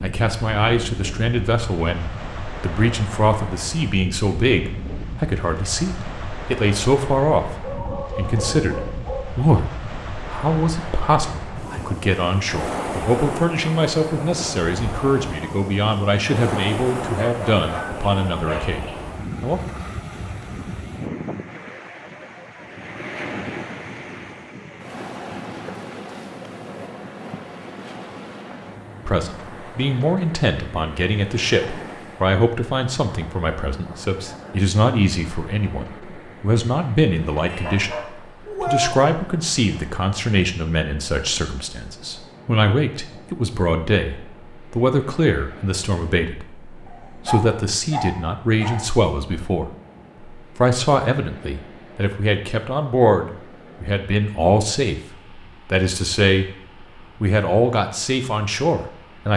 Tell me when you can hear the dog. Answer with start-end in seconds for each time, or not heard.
7.5-9.4, 17.1-19.0, 37.5-38.9, 46.9-48.9.